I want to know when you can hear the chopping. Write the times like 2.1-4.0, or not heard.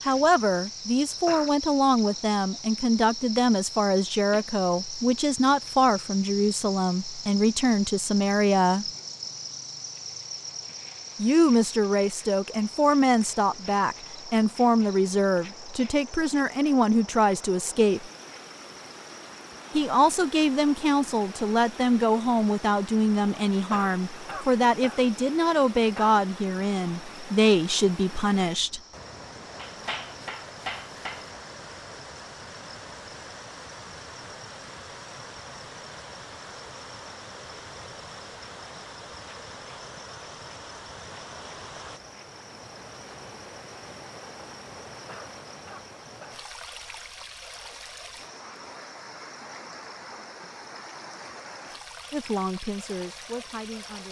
29.6-31.3.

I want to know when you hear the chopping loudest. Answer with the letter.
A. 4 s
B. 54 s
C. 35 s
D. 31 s
D.